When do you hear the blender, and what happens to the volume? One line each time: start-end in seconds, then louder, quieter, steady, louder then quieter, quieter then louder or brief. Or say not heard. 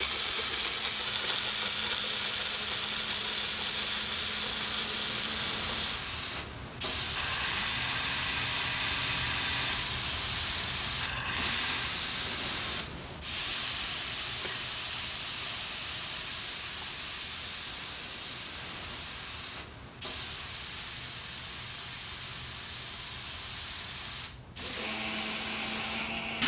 0.0-12.0 steady
24.6-26.4 brief.